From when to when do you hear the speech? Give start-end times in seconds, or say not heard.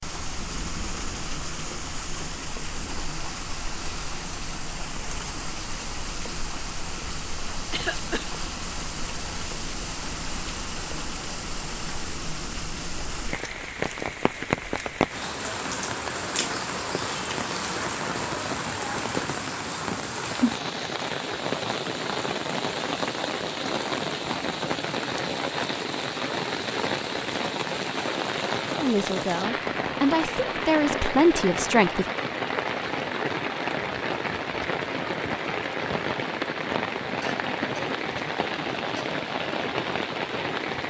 28.8-32.0.